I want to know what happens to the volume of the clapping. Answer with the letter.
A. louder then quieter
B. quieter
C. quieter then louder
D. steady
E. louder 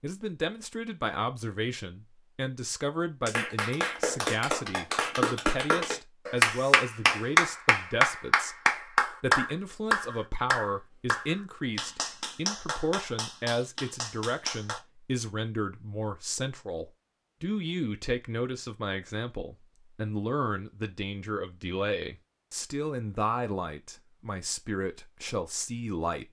A.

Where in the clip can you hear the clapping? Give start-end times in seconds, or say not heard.
3.2-14.8.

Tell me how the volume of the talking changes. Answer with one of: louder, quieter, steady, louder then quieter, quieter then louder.
steady.